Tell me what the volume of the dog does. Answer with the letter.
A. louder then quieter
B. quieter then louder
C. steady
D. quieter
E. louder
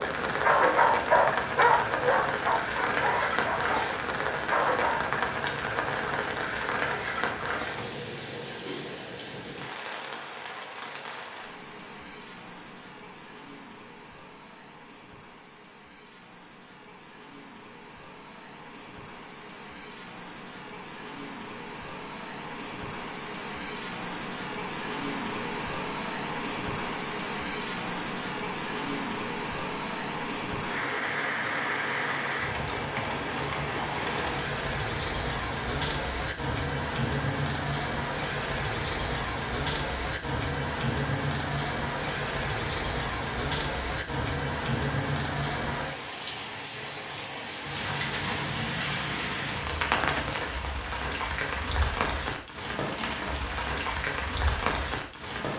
D.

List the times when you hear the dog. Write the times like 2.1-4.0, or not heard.
0.0-5.0.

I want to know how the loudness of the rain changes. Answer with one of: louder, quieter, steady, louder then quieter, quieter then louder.
quieter then louder.